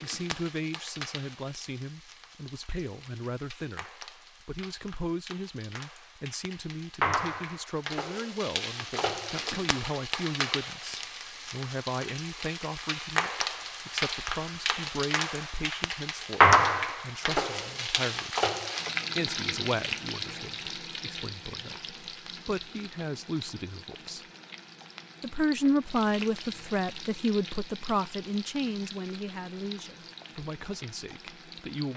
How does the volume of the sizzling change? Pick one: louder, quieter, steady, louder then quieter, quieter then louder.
louder then quieter.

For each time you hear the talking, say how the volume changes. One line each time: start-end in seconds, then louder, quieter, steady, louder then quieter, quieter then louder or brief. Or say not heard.
0.0-18.4 steady
19.1-24.2 quieter then louder
25.2-31.9 quieter.